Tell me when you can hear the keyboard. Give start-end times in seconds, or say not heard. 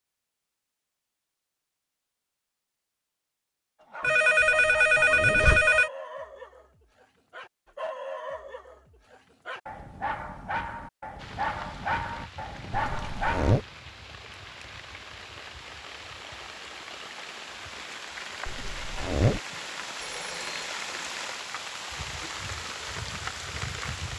not heard.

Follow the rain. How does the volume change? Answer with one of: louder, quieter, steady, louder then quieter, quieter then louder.
louder.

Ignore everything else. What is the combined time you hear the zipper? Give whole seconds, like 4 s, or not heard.
3 s.